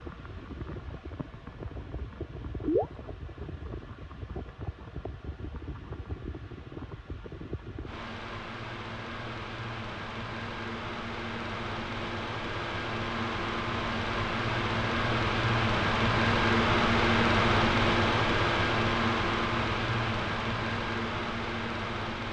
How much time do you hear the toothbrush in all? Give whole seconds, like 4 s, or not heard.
not heard.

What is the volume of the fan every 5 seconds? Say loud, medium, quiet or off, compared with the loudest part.
quiet, quiet, medium, loud, medium.